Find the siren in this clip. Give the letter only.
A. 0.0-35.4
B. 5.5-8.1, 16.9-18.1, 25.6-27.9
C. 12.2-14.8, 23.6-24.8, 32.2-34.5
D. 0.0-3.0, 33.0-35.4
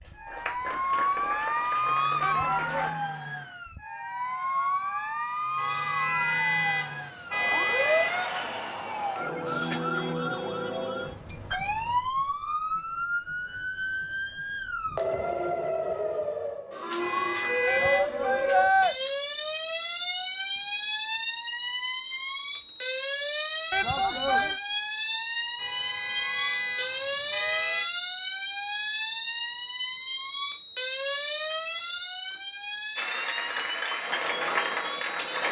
A.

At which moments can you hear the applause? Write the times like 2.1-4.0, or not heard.
0.0-3.0, 33.0-35.4.